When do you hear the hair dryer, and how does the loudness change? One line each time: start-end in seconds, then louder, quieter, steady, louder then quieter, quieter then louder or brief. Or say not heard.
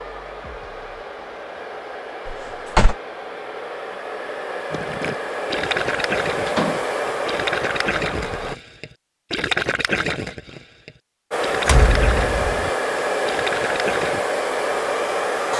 0.0-8.6 louder
11.3-15.5 steady.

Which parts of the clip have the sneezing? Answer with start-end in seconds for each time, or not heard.
not heard.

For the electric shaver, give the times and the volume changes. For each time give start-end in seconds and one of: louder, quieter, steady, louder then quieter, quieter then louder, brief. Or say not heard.
not heard.